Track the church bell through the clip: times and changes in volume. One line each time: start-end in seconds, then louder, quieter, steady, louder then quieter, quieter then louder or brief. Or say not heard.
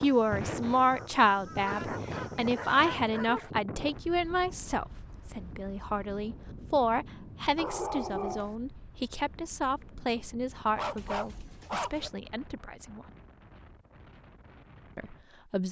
not heard.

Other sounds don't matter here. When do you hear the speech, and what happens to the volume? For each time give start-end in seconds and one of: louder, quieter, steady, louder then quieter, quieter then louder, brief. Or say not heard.
0.0-13.0 quieter
14.9-15.6 brief.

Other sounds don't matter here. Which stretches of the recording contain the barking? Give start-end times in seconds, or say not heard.
1.6-3.5, 7.5-8.6, 10.8-12.1.